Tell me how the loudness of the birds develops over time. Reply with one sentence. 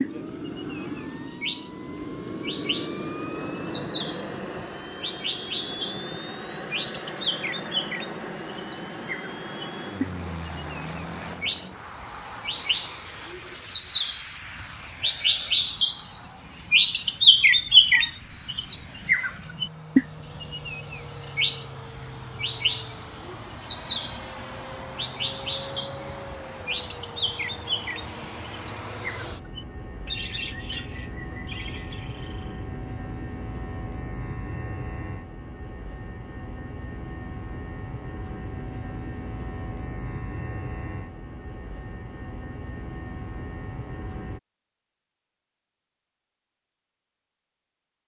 The volume of the birds goes up, then down.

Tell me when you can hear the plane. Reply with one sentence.
You can hear the plane from 0.0 to 44.4 s.